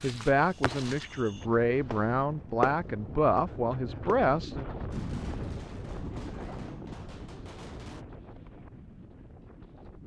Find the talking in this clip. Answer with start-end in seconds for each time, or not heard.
0.0-4.7.